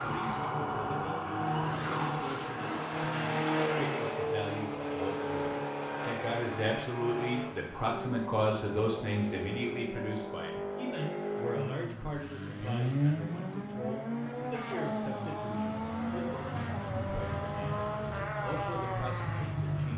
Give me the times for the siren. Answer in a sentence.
You can hear the siren from 0.0 to 2.3 s.